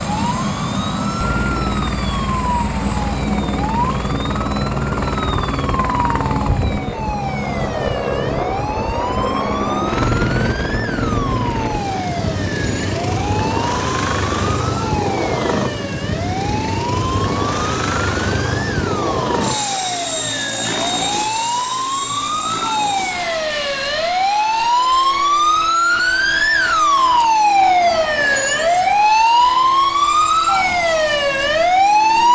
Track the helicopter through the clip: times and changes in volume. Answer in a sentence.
The helicopter can be heard from 0.0 to 32.2 s, getting quieter.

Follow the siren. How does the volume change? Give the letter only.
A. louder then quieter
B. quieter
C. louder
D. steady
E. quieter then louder
C.